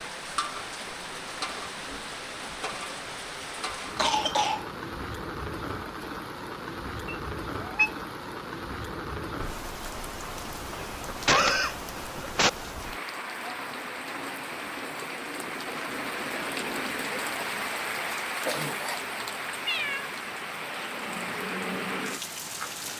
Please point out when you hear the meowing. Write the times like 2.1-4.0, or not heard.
7.0-7.9, 19.6-20.1.